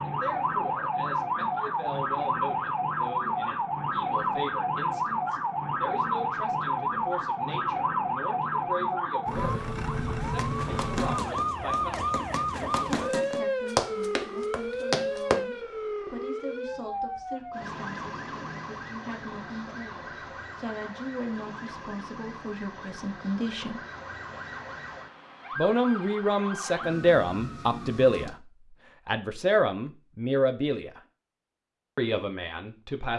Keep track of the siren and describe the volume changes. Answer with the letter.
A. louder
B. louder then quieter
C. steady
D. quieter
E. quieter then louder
D.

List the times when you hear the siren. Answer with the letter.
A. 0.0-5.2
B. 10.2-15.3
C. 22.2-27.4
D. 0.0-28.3
D.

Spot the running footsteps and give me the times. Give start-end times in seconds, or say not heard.
10.2-15.3.